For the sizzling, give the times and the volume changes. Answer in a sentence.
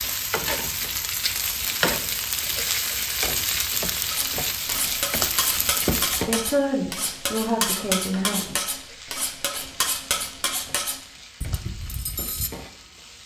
You can hear the sizzling from 0.0 to 13.2 s, getting quieter.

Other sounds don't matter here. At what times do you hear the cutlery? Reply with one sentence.
The cutlery can be heard from 4.1 to 12.5 s.